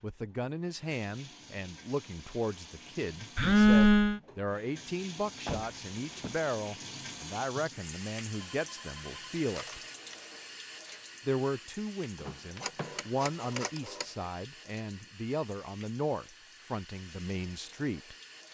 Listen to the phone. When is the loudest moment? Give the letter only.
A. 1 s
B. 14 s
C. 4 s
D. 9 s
C.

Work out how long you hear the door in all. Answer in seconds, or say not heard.
2 s.